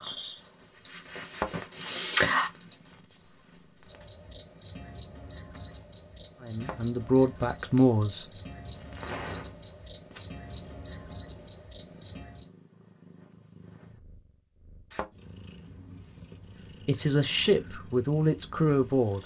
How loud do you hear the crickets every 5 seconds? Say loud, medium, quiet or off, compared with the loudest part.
loud, medium, medium, off.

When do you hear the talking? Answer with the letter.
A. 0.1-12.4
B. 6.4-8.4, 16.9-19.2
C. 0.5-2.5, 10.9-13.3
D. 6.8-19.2
B.